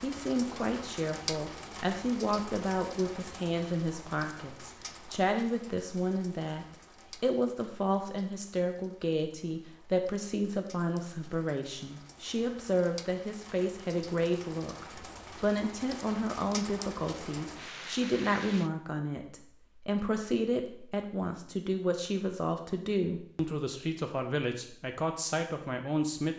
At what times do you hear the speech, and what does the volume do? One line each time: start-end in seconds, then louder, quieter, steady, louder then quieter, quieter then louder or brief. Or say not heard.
0.0-26.3 steady.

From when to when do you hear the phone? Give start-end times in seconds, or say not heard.
not heard.